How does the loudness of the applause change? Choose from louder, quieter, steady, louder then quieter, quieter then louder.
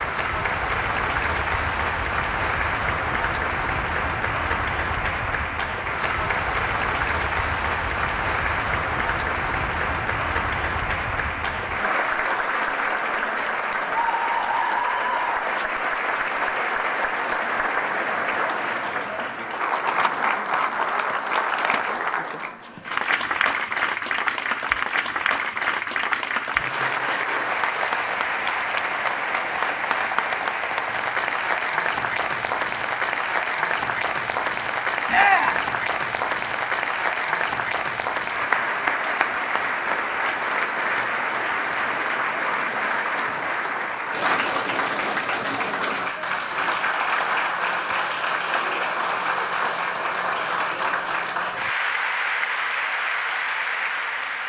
steady.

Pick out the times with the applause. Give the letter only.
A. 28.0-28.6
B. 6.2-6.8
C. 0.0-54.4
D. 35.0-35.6
C.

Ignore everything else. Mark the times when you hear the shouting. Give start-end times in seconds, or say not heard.
35.0-35.6.